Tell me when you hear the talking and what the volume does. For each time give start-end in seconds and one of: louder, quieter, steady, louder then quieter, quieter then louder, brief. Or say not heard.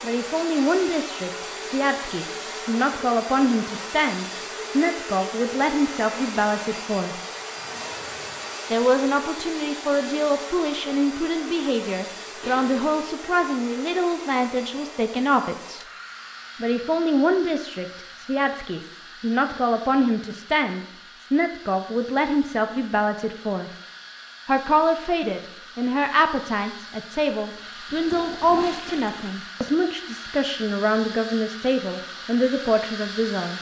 0.0-7.2 steady
8.7-15.8 steady
16.6-23.7 steady
24.4-33.5 steady.